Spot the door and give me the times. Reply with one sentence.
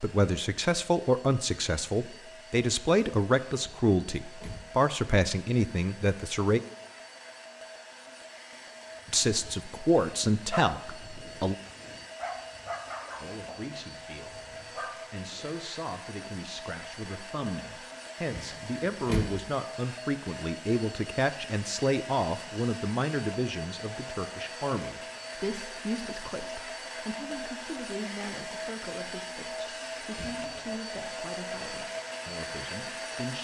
The door can be heard from 3.6 to 4.8 s, from 18.3 to 19.3 s and from 30.1 to 30.8 s.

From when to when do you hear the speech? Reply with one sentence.
The speech can be heard from 0.0 to 6.6 s, from 9.1 to 11.6 s and from 13.2 to 33.3 s.